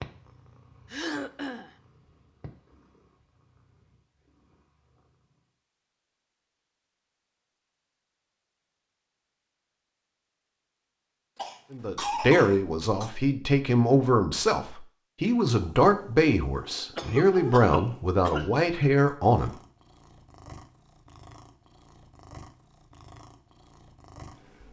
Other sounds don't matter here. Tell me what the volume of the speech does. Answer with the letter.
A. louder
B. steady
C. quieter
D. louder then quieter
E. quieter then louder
B.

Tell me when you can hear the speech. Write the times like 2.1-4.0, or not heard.
11.7-19.6.